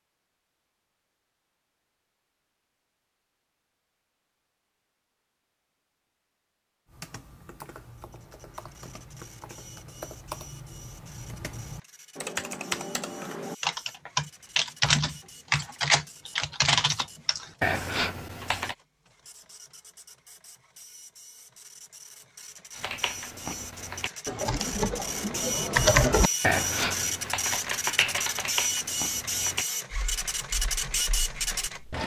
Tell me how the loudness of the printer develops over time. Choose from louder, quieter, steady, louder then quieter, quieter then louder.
louder.